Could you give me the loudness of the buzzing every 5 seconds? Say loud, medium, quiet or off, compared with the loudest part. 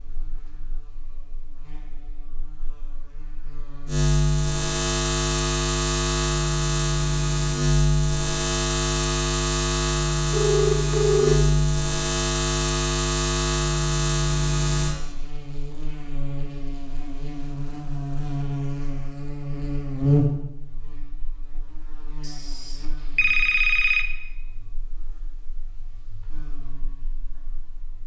medium, loud, loud, medium, medium, quiet.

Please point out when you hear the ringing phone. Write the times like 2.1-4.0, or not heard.
10.3-11.3, 22.2-24.1.